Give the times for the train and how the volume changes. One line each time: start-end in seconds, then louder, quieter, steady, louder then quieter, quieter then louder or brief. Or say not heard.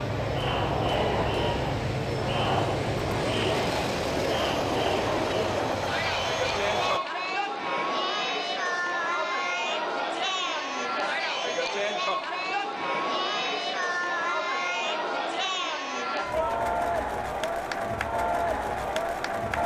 0.0-7.0 steady.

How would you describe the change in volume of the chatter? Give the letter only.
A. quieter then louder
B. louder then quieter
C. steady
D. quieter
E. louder
C.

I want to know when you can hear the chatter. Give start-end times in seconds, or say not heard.
0.0-19.6.